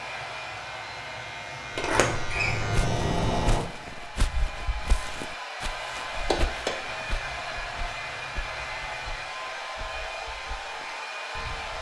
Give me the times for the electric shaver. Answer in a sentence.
The electric shaver can be heard from 0.0 to 3.6 s and from 6.8 to 9.2 s.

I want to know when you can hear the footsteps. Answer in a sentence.
The footsteps can be heard from 2.7 to 11.7 s.